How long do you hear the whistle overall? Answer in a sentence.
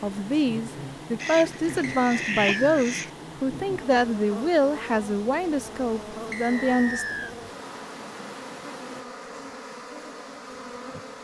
You can hear the whistle for 2 seconds altogether.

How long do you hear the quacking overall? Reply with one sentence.
The quacking can be heard for 2 seconds in total.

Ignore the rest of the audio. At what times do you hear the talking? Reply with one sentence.
You can hear the talking from 0.0 to 7.0 s.